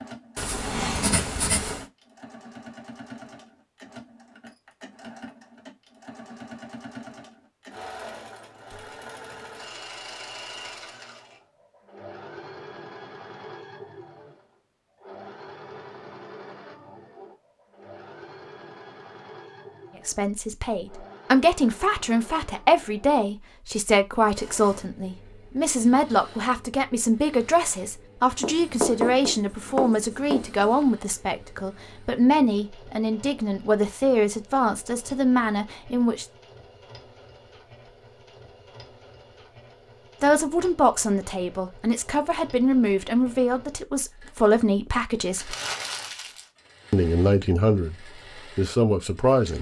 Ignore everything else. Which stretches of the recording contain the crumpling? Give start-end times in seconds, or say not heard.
45.3-46.5.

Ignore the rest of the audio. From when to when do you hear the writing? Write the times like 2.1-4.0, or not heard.
0.3-1.9, 28.4-30.8.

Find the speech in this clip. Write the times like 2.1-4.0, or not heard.
20.1-36.2, 40.2-45.5, 46.9-49.5.